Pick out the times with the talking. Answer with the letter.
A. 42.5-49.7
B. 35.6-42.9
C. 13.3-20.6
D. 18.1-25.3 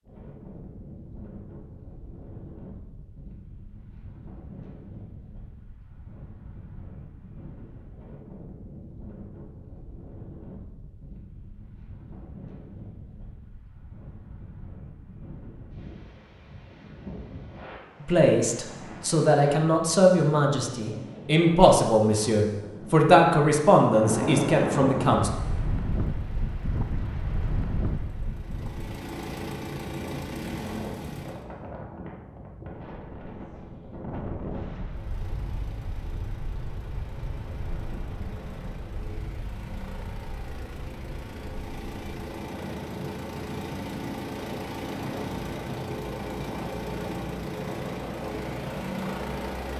D.